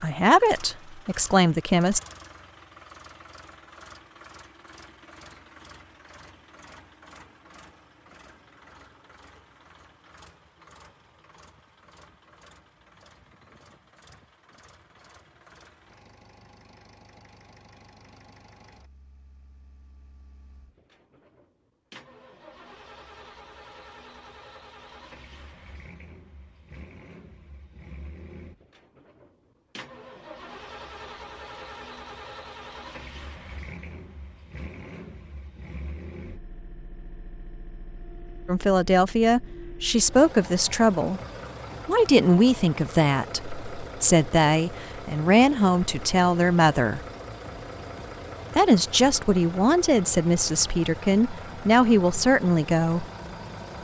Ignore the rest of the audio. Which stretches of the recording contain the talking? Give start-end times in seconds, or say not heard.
0.0-2.0, 38.5-41.2, 41.9-47.0, 48.5-53.0.